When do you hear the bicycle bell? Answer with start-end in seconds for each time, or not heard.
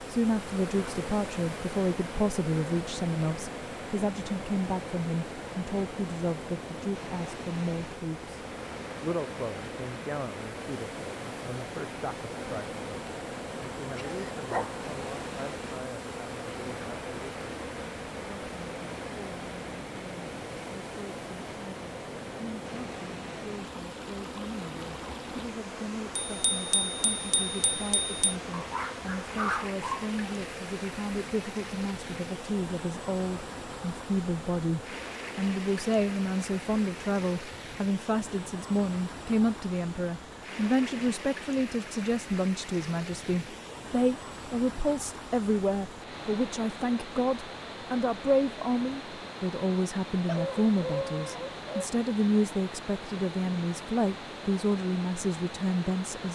26.2-28.4.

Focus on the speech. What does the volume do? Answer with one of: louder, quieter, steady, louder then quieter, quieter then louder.
quieter then louder.